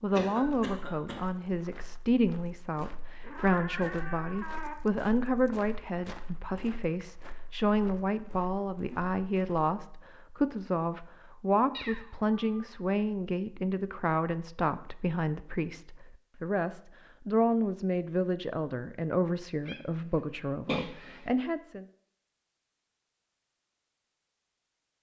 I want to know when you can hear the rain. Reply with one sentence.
You can't hear the rain here.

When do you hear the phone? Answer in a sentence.
The phone can't be heard in this clip.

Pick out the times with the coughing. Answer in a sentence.
You can hear the coughing from 0.1 to 1.2 s and from 20.6 to 21.2 s.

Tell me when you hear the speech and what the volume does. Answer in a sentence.
The speech can be heard from 0.0 to 21.9 s, at a steady volume.